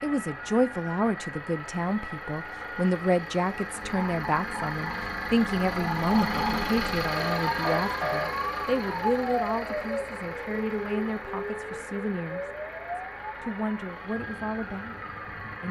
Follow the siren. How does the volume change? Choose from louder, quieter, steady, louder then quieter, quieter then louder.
louder then quieter.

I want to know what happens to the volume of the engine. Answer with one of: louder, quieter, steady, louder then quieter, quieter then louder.
louder then quieter.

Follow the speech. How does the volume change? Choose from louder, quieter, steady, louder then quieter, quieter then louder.
quieter.